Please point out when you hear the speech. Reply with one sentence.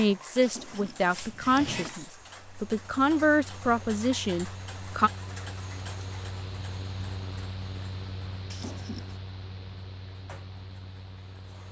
The speech can be heard from 0.0 to 5.1 s.